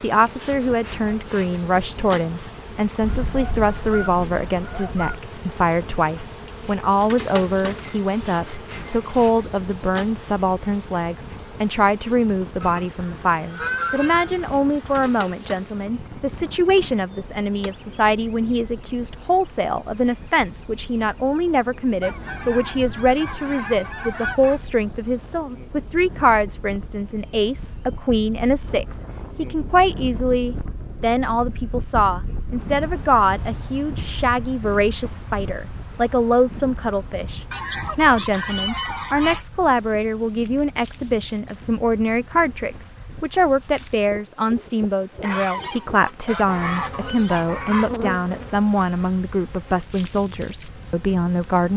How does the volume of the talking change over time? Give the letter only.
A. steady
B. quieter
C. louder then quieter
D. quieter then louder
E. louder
A.